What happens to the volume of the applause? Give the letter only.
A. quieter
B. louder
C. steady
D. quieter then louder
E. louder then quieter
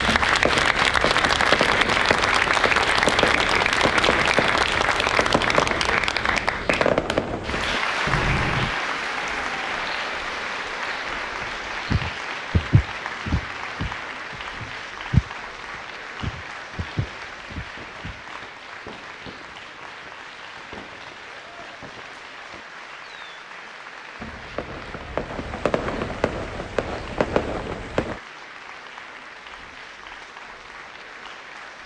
A.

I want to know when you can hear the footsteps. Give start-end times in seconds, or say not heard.
11.4-18.2.